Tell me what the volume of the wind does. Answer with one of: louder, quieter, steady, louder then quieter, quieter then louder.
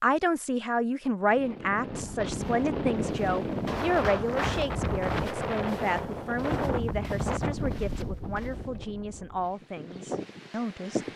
quieter.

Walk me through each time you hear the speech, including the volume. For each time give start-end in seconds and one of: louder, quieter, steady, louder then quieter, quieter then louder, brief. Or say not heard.
0.0-11.1 quieter.